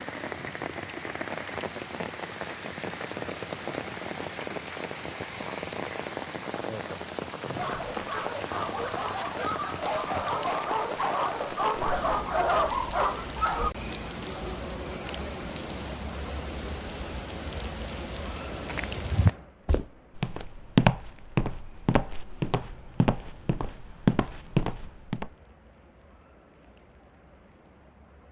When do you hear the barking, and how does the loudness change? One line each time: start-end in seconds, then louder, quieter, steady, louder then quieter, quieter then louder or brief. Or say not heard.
7.5-13.7 louder.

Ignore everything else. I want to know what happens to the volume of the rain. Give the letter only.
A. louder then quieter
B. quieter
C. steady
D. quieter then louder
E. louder
B.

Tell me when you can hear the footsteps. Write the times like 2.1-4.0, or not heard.
18.5-25.3.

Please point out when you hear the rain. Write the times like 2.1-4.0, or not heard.
0.0-28.2.